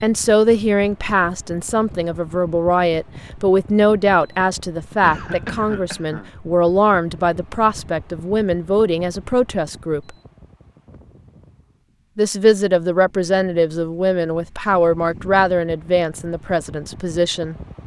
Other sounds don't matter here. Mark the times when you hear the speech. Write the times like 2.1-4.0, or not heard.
0.0-10.1, 12.2-17.6.